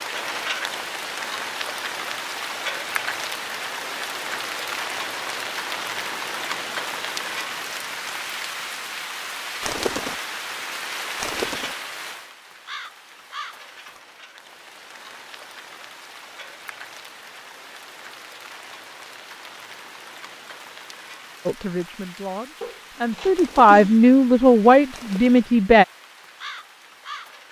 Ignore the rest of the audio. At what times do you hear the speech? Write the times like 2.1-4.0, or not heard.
21.4-25.9.